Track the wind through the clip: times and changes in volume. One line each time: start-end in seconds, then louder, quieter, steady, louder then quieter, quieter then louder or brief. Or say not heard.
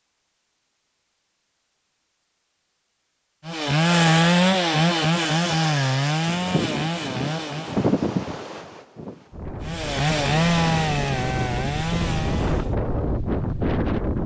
6.2-14.2 quieter then louder.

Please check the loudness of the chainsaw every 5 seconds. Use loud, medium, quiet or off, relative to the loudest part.
loud, medium, medium.